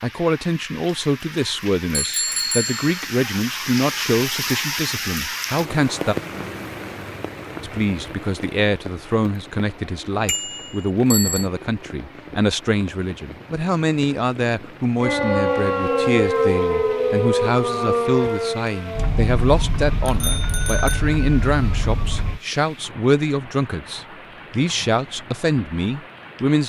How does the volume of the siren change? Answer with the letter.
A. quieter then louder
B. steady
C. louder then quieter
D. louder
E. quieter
E.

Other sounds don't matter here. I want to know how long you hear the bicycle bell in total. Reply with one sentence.
The bicycle bell can be heard for 3 seconds in total.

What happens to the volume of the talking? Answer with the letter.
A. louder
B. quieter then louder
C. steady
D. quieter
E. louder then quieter
C.